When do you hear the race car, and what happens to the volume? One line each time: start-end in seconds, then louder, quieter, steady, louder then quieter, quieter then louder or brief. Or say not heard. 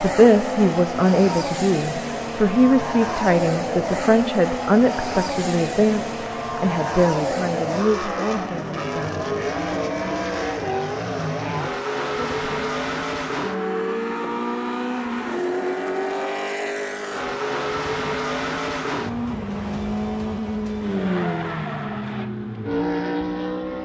0.0-23.8 steady.